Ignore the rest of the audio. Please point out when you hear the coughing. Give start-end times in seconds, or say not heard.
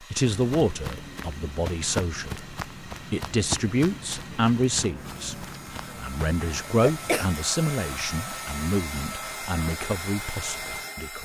6.4-7.3.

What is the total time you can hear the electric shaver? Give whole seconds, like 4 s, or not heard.
not heard.